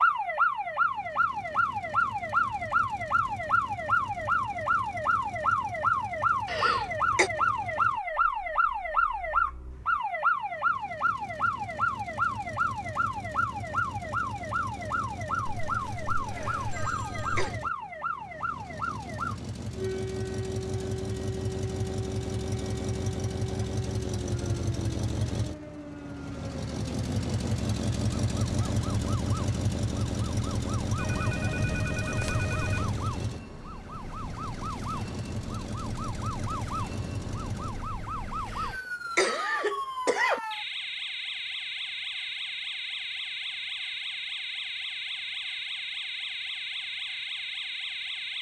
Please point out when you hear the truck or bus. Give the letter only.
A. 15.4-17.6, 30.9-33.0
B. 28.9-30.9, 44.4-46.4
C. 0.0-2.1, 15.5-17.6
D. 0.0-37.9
D.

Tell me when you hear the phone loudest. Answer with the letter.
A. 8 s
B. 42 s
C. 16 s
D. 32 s
D.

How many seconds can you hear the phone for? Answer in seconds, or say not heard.
4 s.